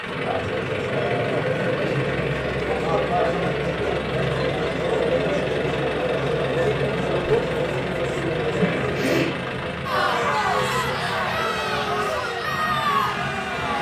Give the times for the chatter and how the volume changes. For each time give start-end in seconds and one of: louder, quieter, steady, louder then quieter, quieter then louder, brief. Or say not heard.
0.0-13.7 steady.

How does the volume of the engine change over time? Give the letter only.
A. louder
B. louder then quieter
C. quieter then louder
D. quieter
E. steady
E.